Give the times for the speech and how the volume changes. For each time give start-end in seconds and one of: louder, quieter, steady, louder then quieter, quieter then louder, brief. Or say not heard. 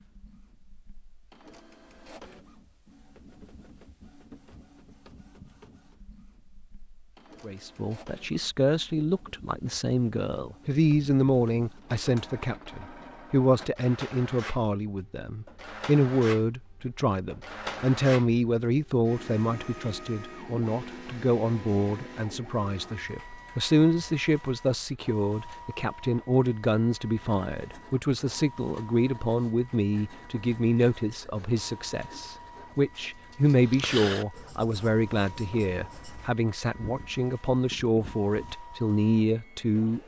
7.5-40.0 steady.